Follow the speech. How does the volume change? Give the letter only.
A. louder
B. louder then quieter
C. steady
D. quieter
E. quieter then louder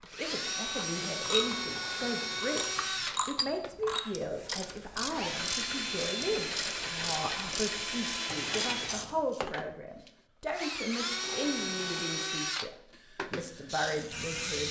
C.